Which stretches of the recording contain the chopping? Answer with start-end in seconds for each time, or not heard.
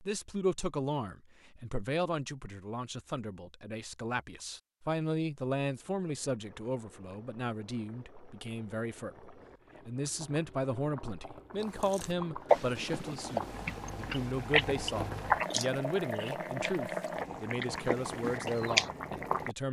not heard.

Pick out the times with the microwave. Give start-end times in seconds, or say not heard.
not heard.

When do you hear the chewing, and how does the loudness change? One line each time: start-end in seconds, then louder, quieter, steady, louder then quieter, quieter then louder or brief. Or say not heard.
11.8-18.9 quieter then louder.